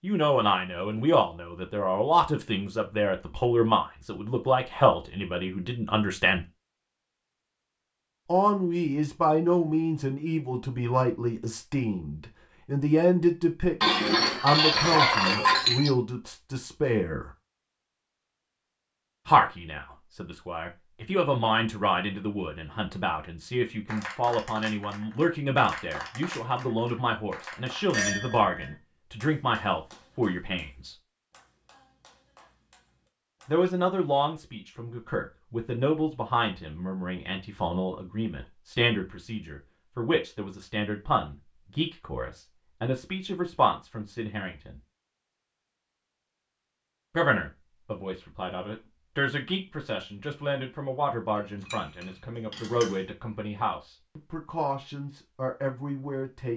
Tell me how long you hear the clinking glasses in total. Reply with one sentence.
You can hear the clinking glasses for 4 seconds altogether.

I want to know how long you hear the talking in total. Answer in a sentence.
The talking can be heard for 48 seconds in total.